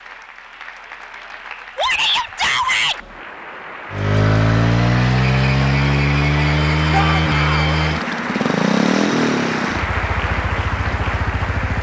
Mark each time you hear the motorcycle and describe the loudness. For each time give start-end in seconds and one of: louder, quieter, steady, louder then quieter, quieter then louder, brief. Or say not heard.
3.9-11.7 quieter.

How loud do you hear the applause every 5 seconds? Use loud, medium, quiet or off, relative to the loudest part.
medium, loud, loud.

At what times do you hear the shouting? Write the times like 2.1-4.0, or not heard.
1.8-3.0, 6.9-7.8.